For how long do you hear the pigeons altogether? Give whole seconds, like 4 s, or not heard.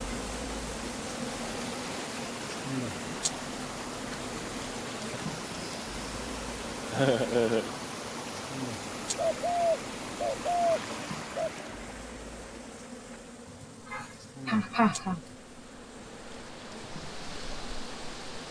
2 s.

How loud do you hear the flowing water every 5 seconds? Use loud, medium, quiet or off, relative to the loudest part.
loud, loud, loud, medium.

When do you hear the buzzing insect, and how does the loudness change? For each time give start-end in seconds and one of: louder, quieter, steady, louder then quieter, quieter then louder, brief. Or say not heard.
0.0-18.4 quieter.